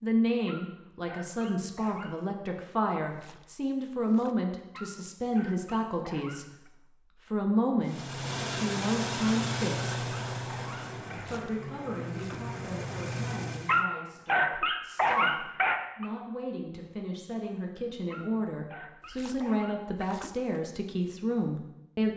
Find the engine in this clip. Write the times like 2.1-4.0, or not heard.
7.8-13.8.